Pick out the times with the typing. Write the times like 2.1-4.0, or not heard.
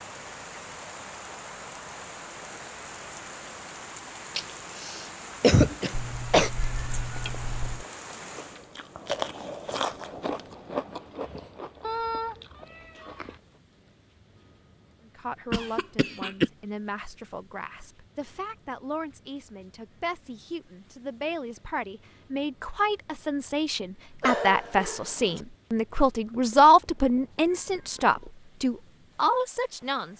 not heard.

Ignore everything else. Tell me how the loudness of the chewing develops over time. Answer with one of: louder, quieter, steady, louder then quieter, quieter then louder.
louder then quieter.